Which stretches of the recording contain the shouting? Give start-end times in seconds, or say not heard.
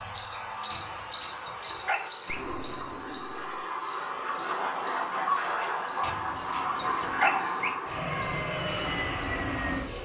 not heard.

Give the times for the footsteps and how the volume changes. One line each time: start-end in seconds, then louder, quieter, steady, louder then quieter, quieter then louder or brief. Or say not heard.
not heard.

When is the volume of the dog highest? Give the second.
7 s.